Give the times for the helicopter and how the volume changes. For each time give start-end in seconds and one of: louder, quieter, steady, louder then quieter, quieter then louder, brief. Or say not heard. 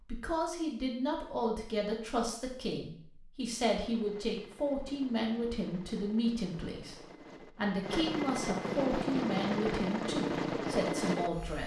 3.6-11.6 louder.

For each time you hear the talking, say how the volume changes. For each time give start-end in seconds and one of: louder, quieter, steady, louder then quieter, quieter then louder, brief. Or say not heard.
0.1-11.6 steady.